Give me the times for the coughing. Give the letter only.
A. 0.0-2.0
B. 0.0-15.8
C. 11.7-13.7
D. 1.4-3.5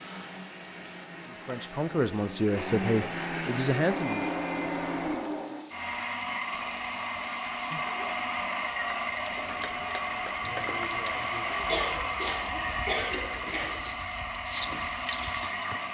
C.